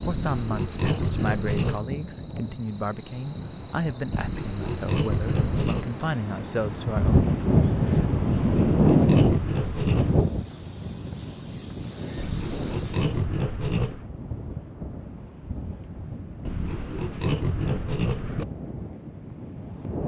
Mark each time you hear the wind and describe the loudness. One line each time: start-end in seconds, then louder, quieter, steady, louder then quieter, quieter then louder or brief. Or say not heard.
0.0-20.0 louder then quieter.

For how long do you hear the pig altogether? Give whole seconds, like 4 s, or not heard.
9 s.